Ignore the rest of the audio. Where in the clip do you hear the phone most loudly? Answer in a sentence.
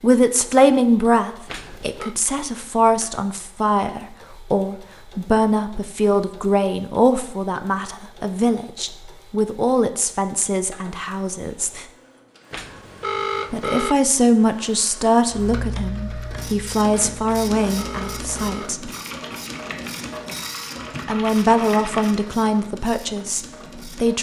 The volume of the phone peaks at 13 seconds.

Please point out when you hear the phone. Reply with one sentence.
You can hear the phone from 1.4 to 2.1 s, from 12.5 to 13.9 s and from 17.2 to 18.7 s.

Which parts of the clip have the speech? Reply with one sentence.
The speech can be heard from 0.0 to 11.8 s, from 13.5 to 18.9 s and from 21.1 to 24.1 s.